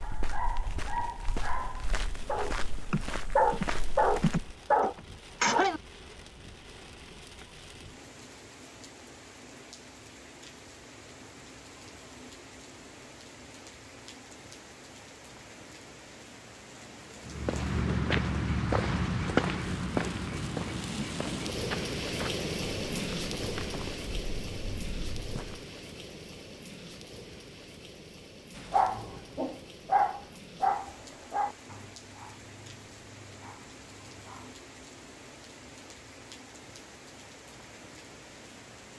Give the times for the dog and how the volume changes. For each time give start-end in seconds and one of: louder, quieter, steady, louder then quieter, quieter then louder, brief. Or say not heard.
0.0-5.8 louder
28.6-34.5 quieter.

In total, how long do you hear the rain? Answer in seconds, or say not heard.
39 s.